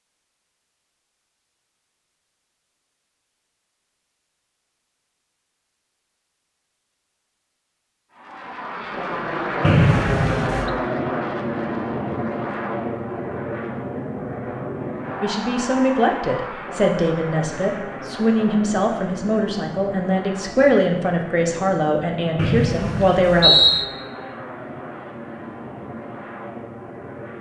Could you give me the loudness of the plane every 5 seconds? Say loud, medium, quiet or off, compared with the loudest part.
off, loud, loud, medium, medium, medium.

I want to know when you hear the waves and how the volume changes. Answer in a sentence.
You can't hear the waves here.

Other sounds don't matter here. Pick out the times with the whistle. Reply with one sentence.
You can hear the whistle from 9.6 to 10.7 s and from 22.4 to 23.9 s.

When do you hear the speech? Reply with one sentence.
You can hear the speech from 15.2 to 23.5 s.